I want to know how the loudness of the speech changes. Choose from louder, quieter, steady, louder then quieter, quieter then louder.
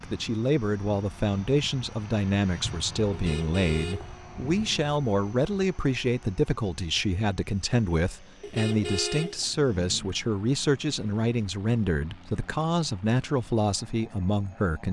steady.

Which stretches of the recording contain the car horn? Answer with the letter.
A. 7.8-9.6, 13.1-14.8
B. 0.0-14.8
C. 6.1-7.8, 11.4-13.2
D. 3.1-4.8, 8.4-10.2
D.